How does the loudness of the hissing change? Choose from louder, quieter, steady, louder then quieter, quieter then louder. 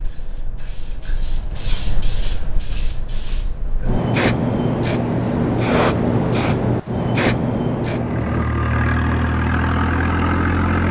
louder.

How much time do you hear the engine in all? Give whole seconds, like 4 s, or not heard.
3 s.